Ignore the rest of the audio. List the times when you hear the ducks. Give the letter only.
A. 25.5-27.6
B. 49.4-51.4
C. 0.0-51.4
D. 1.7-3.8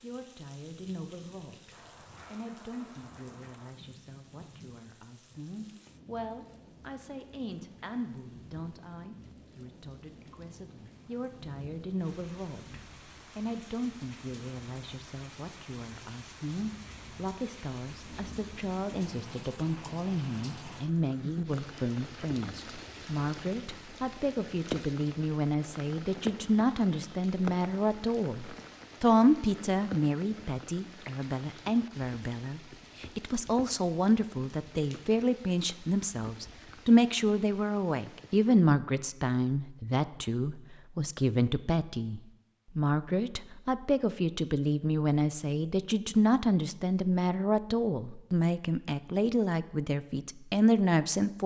D.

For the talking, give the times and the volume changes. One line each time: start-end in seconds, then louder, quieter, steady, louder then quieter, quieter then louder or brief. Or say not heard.
0.0-51.4 louder.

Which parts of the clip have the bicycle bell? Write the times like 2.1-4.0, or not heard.
not heard.